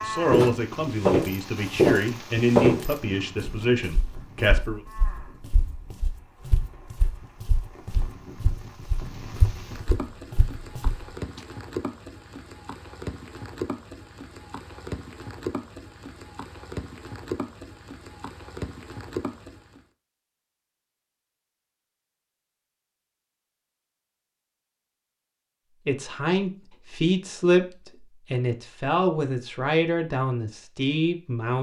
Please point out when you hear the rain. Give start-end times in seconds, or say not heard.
0.0-19.8.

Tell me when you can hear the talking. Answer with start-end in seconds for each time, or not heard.
0.0-4.8, 25.9-31.5.